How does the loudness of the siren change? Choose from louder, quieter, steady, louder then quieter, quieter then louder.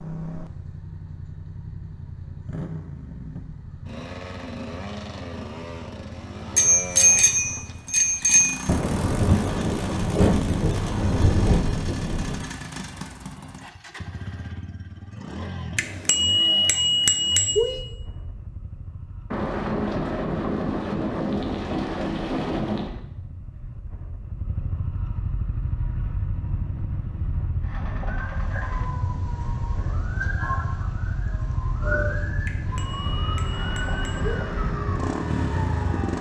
louder.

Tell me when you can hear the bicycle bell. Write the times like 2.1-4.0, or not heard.
6.5-8.6, 15.8-17.8, 32.5-34.5.